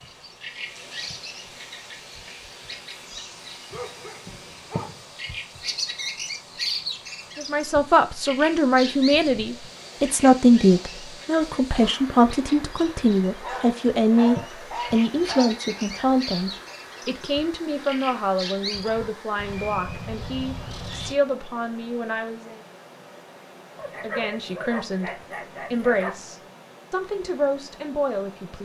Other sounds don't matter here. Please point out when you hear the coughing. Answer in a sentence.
The coughing can't be heard in this clip.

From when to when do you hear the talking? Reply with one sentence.
You can hear the talking from 7.3 to 22.6 s and from 24.0 to 28.5 s.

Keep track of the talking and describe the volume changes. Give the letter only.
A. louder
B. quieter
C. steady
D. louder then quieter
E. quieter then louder
B.